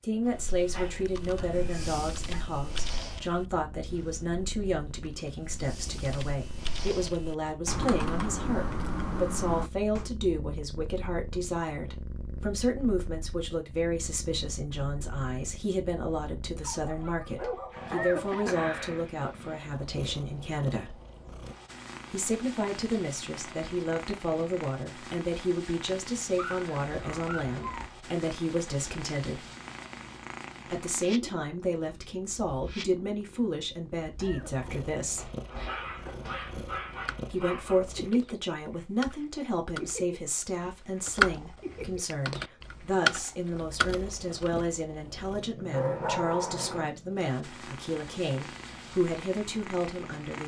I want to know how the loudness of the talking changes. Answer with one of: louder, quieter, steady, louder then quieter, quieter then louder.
steady.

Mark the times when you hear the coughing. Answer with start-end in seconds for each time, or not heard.
17.9-18.6, 34.2-34.7.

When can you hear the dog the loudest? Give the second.
46 s.